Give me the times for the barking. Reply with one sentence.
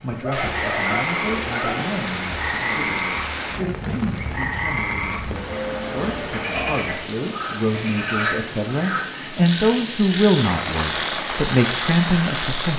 The barking can be heard from 0.2 to 1.9 s.